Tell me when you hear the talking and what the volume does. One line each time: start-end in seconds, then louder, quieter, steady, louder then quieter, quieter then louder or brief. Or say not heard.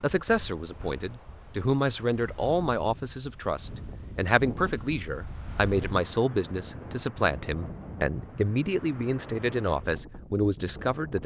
0.0-11.2 steady.